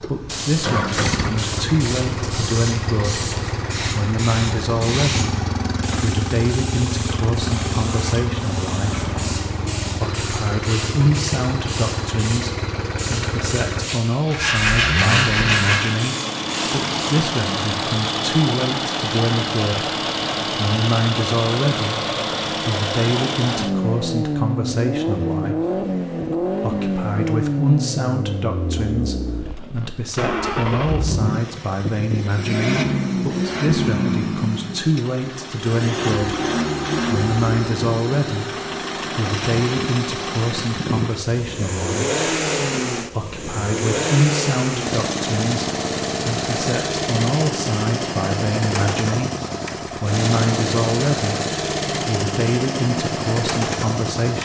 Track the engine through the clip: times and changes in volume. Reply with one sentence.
The engine can be heard from 0.0 to 54.4 s, at a steady volume.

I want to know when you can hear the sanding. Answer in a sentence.
You can hear the sanding from 14.3 to 15.9 s.